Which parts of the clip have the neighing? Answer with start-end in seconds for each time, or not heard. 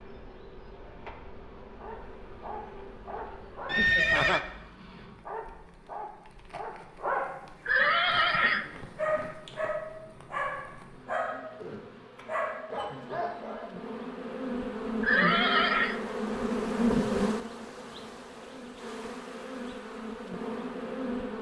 3.6-4.4, 7.7-8.7, 15.0-15.9.